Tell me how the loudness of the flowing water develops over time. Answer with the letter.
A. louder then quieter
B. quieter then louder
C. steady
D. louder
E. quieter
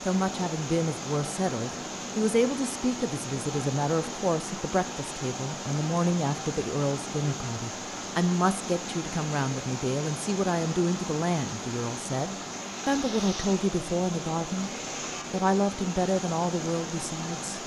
C.